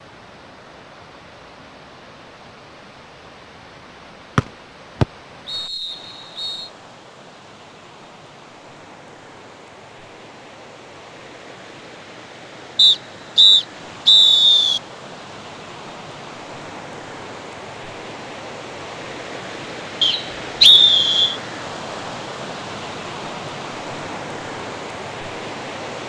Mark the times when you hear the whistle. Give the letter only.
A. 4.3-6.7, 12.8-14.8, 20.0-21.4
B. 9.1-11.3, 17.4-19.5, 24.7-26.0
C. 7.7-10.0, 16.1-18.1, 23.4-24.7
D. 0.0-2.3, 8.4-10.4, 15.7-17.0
A.